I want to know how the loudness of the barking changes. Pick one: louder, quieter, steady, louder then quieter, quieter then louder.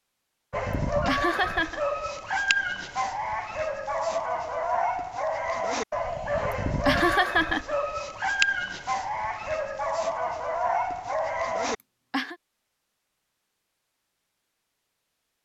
steady.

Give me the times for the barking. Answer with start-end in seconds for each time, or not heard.
0.5-11.8.